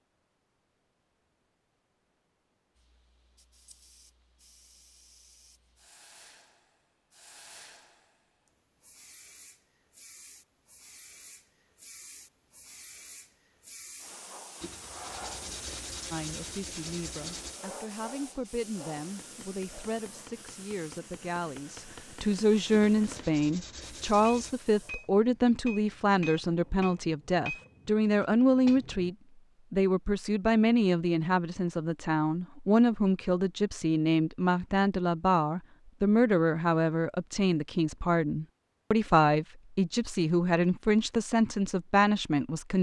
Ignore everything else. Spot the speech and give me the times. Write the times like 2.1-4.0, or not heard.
16.1-42.7.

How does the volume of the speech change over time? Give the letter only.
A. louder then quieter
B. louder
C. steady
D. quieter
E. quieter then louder
B.